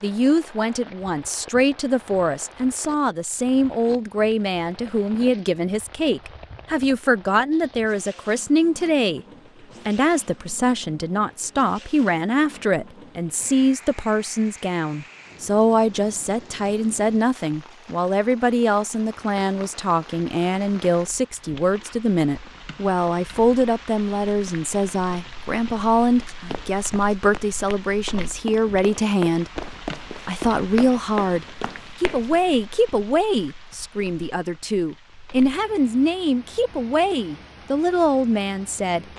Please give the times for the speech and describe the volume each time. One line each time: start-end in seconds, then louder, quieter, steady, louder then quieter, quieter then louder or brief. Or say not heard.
0.0-9.2 steady
9.8-39.0 steady.